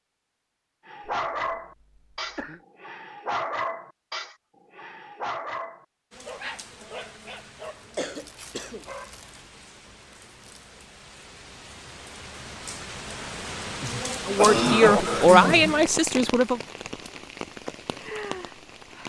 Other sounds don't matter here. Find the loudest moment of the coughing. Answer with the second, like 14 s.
15 s.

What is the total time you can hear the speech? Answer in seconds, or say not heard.
2 s.